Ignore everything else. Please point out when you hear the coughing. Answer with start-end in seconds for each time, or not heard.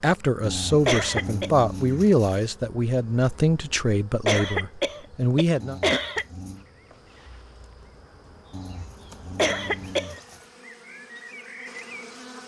0.8-1.5, 4.2-6.2, 9.3-10.2.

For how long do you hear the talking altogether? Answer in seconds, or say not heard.
6 s.